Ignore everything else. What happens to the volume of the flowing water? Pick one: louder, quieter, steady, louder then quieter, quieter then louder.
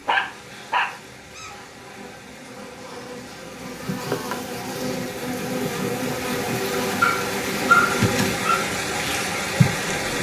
louder.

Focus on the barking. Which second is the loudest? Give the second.
8 s.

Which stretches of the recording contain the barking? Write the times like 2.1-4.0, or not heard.
0.1-1.5, 7.0-8.7.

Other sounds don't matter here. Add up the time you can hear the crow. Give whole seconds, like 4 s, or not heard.
not heard.